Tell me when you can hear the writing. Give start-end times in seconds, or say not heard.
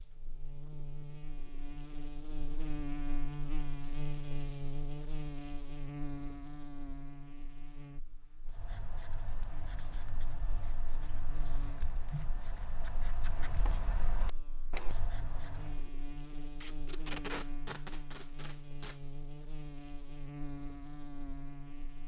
8.4-15.9.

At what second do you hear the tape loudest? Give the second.
17 s.